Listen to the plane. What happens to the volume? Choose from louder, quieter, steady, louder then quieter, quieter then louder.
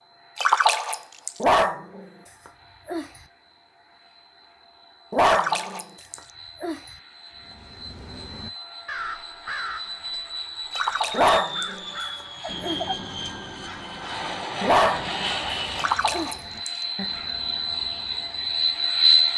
louder.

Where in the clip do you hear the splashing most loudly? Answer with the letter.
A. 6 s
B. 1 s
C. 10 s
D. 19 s
B.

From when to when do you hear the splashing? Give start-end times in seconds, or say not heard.
0.3-1.4, 5.2-6.3, 10.7-11.8, 15.8-16.7.